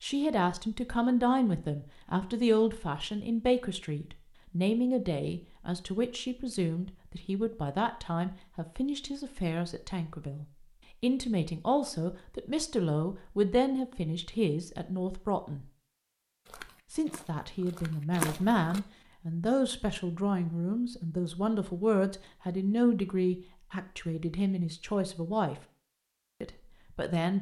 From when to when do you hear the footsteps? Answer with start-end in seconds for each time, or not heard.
16.4-18.8.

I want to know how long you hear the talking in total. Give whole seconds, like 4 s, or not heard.
25 s.